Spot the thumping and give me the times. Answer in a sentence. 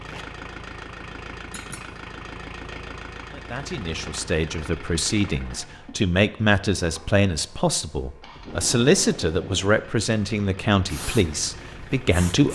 The thumping can be heard from 1.5 to 1.9 s.